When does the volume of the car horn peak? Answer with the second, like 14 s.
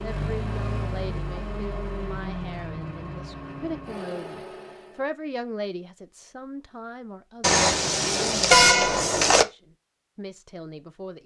9 s.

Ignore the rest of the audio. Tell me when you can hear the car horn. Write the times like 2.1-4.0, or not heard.
7.4-9.4.